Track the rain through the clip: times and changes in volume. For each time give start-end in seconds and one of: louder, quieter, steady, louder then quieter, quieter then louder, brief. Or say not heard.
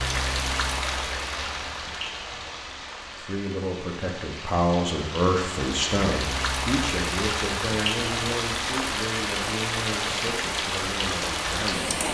0.0-12.0 quieter then louder.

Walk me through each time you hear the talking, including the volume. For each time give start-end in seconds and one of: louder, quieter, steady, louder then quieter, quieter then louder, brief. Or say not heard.
3.1-12.0 quieter.